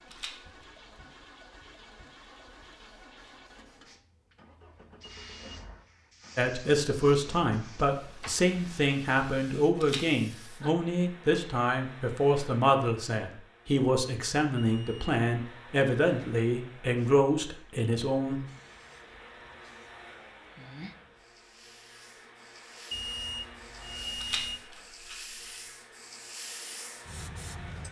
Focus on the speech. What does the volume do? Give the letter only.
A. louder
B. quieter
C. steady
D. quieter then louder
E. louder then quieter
C.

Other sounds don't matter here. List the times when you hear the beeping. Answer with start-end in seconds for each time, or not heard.
5.0-5.6, 14.6-15.0, 22.9-24.6.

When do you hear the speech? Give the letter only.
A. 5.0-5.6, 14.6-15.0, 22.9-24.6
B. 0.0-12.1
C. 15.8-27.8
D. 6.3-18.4
D.